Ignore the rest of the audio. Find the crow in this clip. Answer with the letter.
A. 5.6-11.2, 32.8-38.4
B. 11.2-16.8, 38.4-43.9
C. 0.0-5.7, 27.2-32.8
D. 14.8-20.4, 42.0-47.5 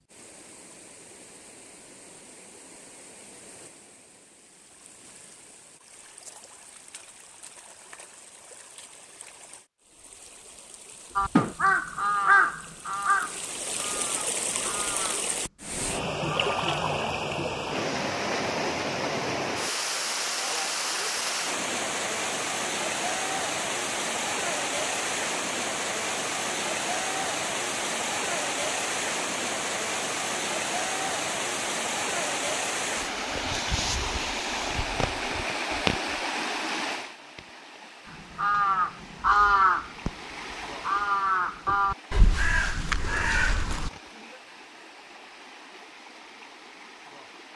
B.